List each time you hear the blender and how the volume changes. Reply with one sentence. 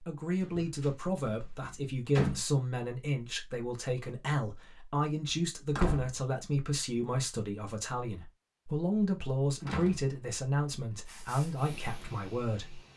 The blender can't be heard in this clip.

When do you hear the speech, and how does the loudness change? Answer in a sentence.
The speech can be heard from 0.0 to 12.8 s, at a steady volume.